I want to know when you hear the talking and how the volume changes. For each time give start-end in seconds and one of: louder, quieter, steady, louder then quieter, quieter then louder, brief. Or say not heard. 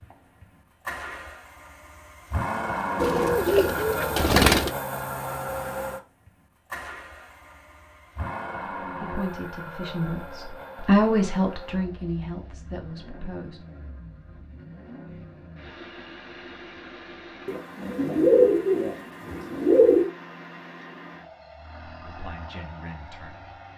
8.8-13.6 louder then quieter
21.9-23.7 brief.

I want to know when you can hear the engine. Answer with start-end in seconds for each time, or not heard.
0.0-23.7.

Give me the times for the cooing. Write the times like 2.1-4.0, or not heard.
3.0-4.7, 17.4-20.1.